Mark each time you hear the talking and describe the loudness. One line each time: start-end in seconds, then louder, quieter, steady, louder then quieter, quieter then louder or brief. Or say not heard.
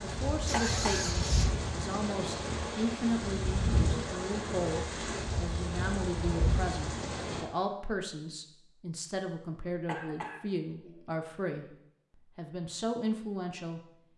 0.0-13.9 steady.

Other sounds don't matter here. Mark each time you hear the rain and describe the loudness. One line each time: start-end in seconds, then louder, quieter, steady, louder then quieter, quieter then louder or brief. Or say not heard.
0.0-7.5 steady.